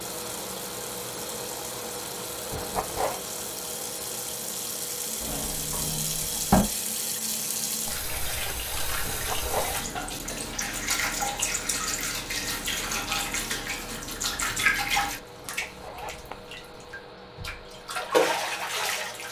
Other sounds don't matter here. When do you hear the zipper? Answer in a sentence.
The zipper can be heard from 2.5 to 3.2 s, from 9.1 to 9.8 s and from 15.3 to 16.4 s.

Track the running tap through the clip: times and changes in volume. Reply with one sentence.
The running tap can be heard from 0.0 to 19.2 s, getting louder.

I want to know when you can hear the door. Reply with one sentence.
You can hear the door from 5.2 to 6.7 s.